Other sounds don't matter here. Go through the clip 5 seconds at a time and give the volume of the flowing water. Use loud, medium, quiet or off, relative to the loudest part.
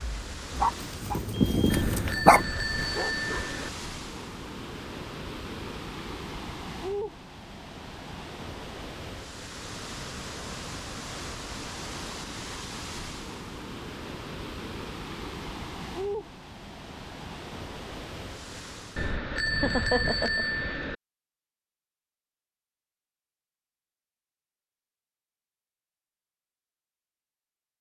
loud, loud, loud, loud, off, off.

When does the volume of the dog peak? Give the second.
2 s.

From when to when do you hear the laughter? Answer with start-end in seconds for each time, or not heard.
19.4-20.4.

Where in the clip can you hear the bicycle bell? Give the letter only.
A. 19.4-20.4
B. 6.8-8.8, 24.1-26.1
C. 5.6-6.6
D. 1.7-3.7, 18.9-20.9
D.